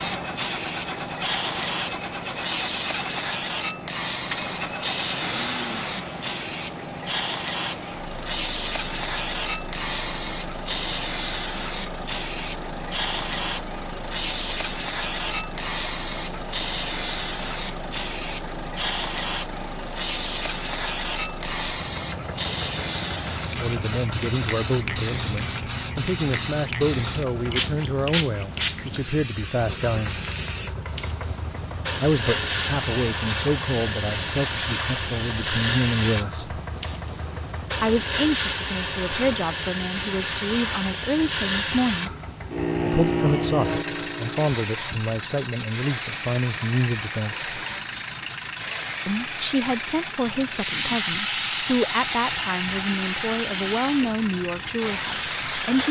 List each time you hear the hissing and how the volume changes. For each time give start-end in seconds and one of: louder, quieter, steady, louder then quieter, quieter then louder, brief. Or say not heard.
0.0-55.8 steady.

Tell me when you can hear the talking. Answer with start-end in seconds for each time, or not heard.
23.4-30.2, 31.9-36.6, 37.8-42.1, 42.8-47.5, 49.0-55.8.